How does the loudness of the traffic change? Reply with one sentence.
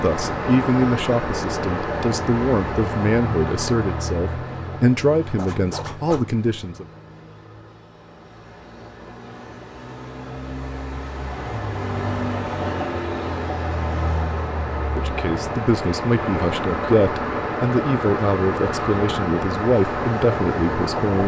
The loudness of the traffic goes down, then up.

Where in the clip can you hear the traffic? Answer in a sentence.
The traffic can be heard from 0.0 to 21.2 s.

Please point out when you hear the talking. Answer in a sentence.
You can hear the talking from 0.0 to 6.8 s and from 14.9 to 21.2 s.